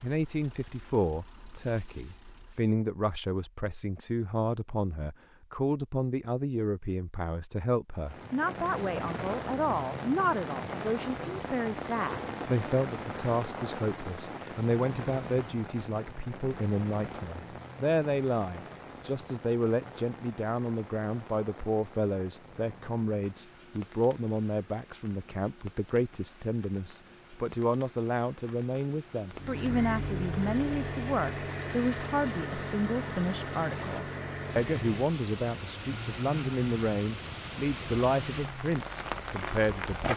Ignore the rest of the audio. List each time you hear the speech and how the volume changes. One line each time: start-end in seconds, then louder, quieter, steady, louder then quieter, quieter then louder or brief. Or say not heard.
0.0-40.1 steady.